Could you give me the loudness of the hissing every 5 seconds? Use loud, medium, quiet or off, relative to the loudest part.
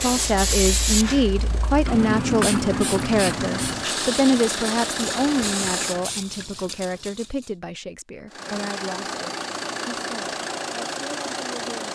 loud, medium, off.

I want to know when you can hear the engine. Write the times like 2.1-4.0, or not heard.
0.0-6.2, 8.2-11.9.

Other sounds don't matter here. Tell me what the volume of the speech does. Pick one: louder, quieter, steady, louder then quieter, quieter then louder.
quieter.